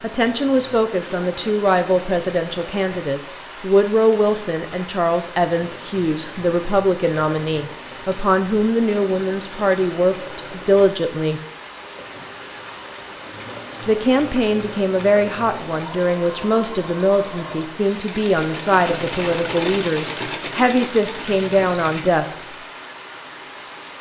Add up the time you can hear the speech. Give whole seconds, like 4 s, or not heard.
20 s.